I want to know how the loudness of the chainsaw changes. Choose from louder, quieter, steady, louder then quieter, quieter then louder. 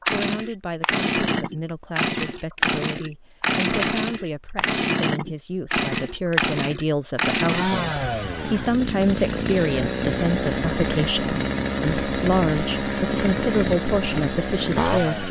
steady.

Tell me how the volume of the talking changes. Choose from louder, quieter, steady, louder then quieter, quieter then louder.
louder.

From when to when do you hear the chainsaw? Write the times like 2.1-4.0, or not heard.
0.0-15.2.